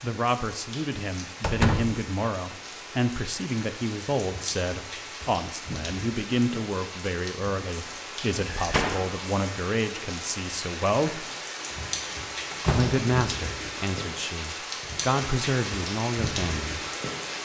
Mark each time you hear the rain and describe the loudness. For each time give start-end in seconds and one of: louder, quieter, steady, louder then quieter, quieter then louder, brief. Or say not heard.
0.0-17.4 louder.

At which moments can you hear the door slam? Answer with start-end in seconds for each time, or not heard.
1.4-2.0, 8.4-9.2, 12.1-13.1.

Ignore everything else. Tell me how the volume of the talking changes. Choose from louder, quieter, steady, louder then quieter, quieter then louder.
steady.